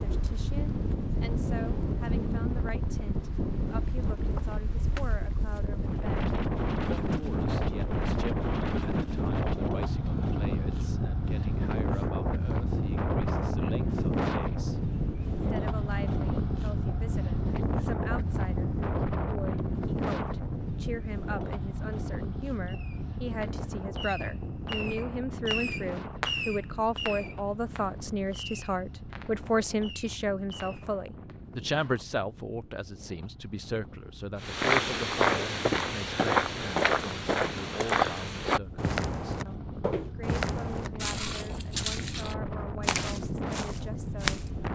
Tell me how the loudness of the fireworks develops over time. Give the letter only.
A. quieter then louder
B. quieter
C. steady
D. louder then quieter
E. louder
D.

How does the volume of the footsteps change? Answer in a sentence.
The volume of the footsteps goes down.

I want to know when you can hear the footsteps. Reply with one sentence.
The footsteps can be heard from 34.4 to 44.5 s.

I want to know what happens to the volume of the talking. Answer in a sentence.
The volume of the talking goes up, then down.